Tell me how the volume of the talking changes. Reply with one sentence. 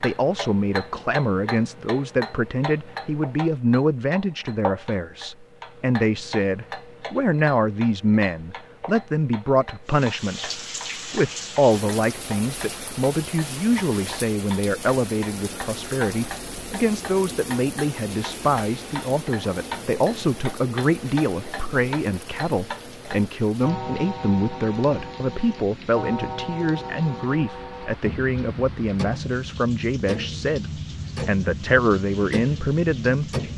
The loudness of the talking stays about the same.